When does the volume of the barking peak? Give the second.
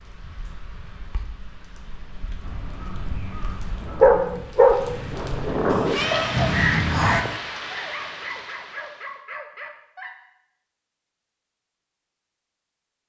4 s.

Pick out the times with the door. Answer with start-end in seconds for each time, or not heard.
not heard.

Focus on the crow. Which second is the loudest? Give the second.
7 s.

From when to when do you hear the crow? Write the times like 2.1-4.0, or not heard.
2.4-7.2.